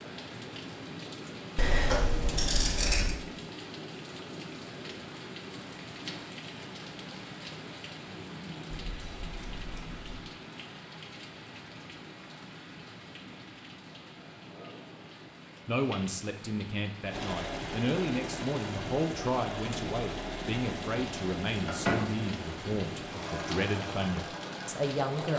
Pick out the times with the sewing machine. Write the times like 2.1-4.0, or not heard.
17.1-25.3.